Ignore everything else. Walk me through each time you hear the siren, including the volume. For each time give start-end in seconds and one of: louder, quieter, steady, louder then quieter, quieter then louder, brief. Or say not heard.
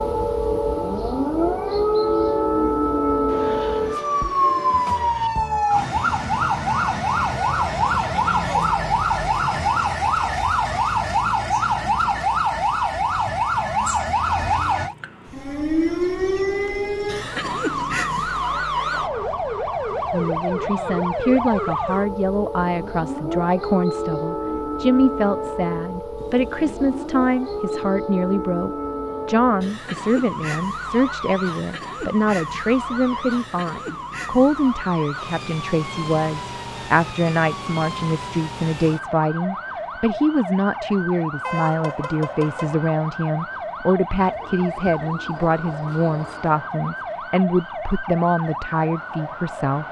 0.0-49.8 quieter.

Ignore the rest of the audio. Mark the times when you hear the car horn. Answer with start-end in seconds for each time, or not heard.
41.4-42.9.